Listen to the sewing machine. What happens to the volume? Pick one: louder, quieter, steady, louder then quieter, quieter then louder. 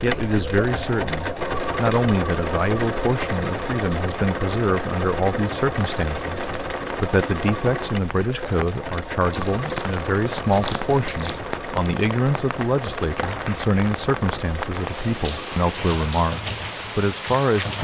quieter.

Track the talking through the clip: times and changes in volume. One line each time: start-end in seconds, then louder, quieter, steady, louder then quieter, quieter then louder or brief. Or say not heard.
0.0-17.7 steady.